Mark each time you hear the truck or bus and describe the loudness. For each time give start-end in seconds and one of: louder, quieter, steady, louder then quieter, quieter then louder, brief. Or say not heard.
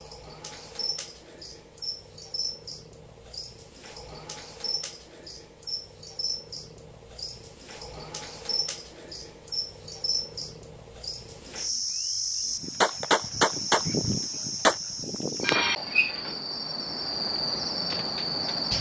not heard.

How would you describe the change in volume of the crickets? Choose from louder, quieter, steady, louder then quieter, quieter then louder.
louder.